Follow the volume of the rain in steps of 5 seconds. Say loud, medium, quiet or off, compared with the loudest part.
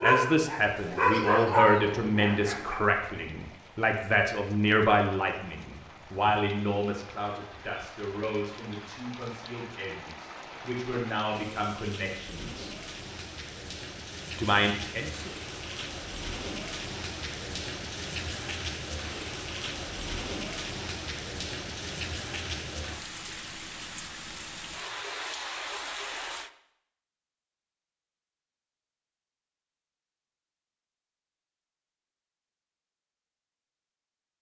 quiet, medium, medium, loud, loud, loud, off.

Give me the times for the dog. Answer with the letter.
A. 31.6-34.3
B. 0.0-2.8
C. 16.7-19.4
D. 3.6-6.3
B.